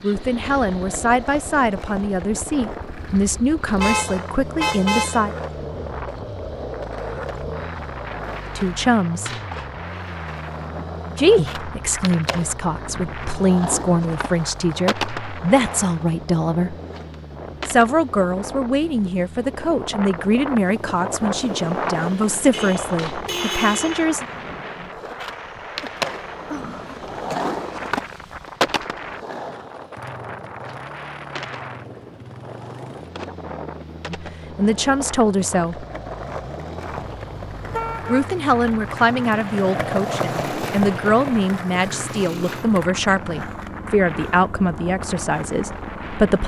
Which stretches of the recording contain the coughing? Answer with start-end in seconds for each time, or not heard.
25.4-27.4.